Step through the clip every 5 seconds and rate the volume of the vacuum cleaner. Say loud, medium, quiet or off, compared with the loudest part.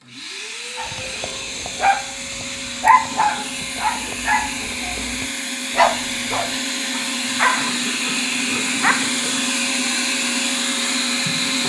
medium, loud, loud.